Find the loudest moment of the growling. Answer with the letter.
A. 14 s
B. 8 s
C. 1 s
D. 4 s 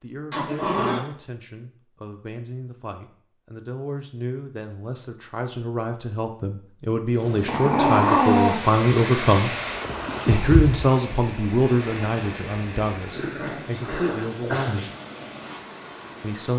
B.